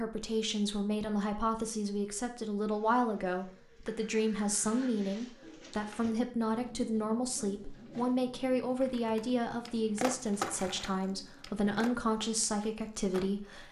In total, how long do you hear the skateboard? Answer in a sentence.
You can hear the skateboard for 5 seconds altogether.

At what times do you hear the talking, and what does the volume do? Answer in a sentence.
You can hear the talking from 0.0 to 13.6 s, at a steady volume.